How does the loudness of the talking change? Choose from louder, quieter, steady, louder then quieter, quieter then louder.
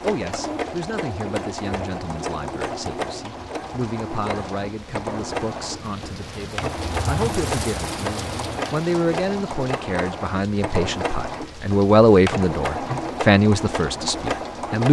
louder.